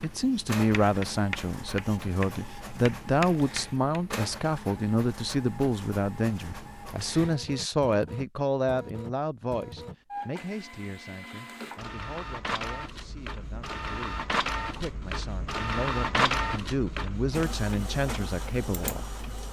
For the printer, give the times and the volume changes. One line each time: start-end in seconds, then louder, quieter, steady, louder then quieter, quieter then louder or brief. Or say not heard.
0.0-19.4 louder.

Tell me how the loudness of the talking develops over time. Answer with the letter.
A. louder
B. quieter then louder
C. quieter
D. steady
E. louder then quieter
B.